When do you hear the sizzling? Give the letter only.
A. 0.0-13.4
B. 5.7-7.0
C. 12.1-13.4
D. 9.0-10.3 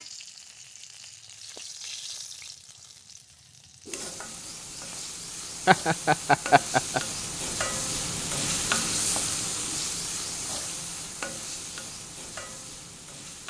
A.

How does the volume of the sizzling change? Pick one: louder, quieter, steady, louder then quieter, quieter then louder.
louder then quieter.